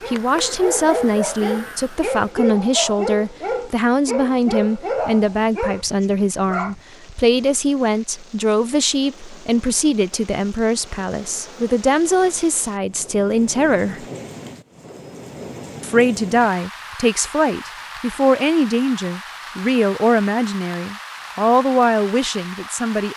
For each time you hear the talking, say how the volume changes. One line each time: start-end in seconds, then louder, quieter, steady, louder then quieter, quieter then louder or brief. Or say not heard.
0.1-14.1 steady
15.8-23.1 steady.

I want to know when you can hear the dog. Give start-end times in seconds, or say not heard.
0.0-6.8.